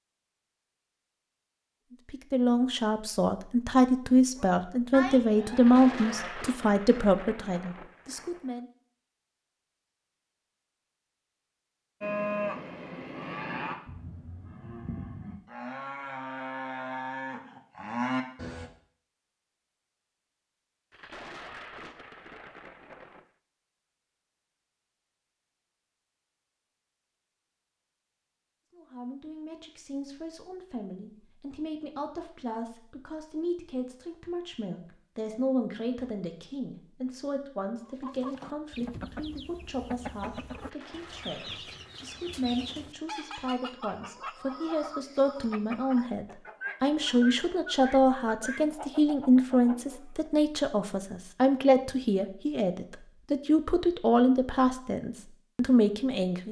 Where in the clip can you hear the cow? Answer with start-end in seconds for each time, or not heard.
4.3-6.3, 12.0-18.7.